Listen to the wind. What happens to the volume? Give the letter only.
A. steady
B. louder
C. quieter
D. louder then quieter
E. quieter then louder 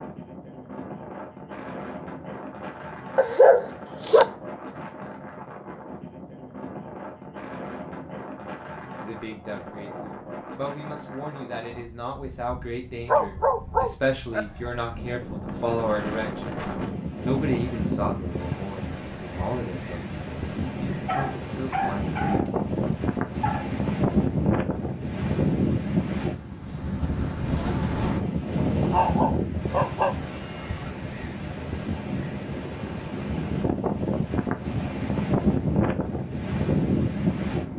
B.